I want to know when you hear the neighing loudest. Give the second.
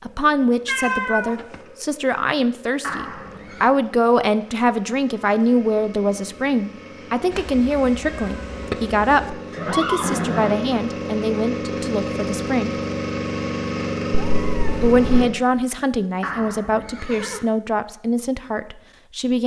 10 s.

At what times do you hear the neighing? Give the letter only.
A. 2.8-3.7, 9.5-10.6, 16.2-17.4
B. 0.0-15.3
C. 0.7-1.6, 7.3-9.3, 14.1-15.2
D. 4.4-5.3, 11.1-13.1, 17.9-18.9
A.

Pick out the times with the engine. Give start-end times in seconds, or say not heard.
0.0-15.3.